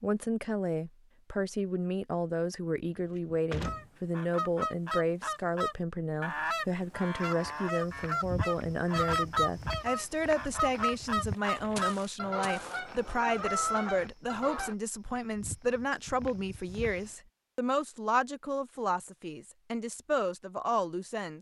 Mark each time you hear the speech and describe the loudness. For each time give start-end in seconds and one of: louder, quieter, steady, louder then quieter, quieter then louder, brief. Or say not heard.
0.0-21.3 steady.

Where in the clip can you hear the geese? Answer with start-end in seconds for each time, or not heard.
3.6-14.8.